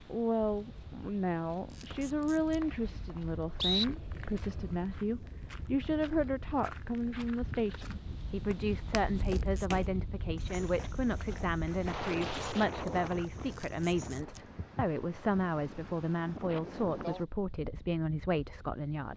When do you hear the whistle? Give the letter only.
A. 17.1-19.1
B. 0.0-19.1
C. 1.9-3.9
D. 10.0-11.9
C.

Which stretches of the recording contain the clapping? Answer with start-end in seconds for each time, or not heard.
not heard.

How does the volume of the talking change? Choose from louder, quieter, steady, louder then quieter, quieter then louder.
steady.